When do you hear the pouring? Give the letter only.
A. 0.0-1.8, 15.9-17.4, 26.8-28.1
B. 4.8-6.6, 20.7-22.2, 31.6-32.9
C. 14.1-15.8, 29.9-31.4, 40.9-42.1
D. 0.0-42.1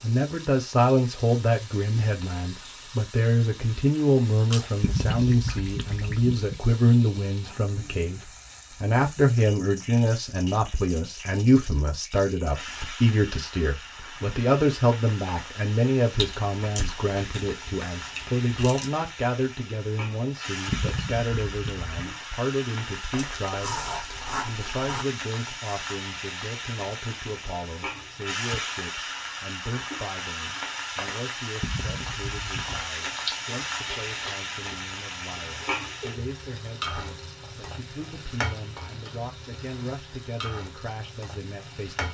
B.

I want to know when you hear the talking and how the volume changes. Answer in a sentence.
The talking can be heard from 0.0 to 42.1 s, getting quieter.